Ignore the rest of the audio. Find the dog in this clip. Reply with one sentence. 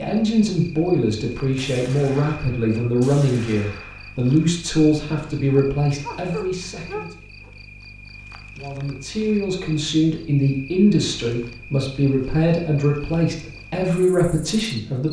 You can hear the dog from 5.5 to 7.5 s.